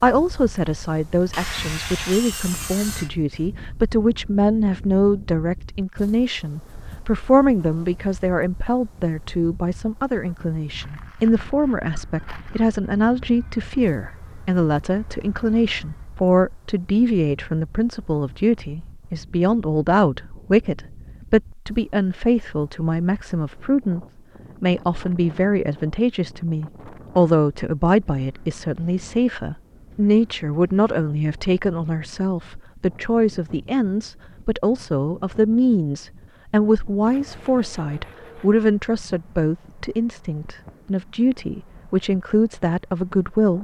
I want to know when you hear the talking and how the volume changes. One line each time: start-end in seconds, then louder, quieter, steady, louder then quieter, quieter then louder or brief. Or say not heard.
0.0-43.6 steady.